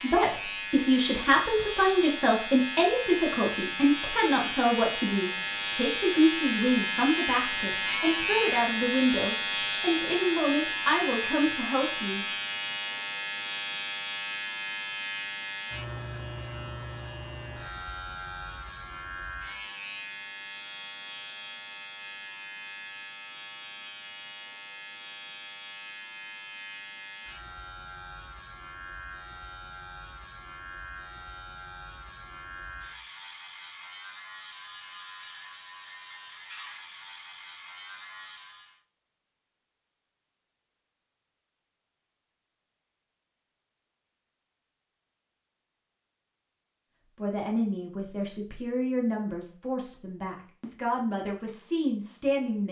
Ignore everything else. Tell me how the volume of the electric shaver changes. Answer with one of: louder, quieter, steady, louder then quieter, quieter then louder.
quieter.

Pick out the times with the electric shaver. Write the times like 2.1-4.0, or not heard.
0.0-38.8.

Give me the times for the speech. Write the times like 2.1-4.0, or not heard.
0.0-12.2, 47.1-52.6.